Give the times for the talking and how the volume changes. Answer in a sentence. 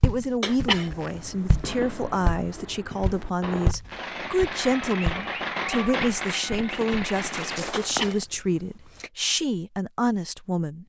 The talking can be heard from 0.0 to 10.8 s, at a steady volume.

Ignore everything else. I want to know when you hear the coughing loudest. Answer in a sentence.
The volume of the coughing peaks at 1 second.